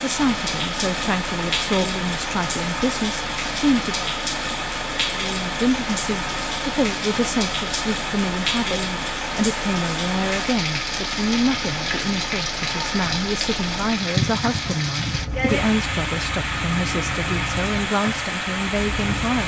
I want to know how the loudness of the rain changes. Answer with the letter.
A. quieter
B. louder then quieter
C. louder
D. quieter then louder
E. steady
E.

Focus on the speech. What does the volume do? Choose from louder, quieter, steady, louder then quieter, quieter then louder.
steady.